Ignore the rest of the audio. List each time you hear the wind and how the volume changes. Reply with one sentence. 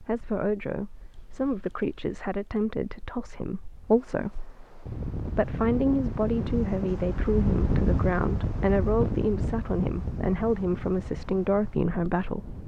You can hear the wind from 0.0 to 12.6 s, getting louder then quieter.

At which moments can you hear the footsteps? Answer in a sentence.
You can't hear the footsteps here.